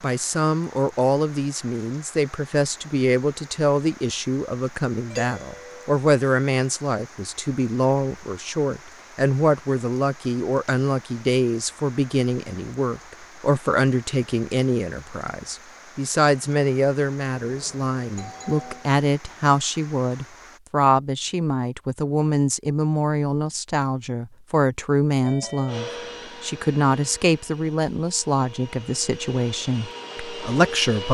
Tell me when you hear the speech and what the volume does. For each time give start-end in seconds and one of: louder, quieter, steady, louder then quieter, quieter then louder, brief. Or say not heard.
0.0-31.0 steady.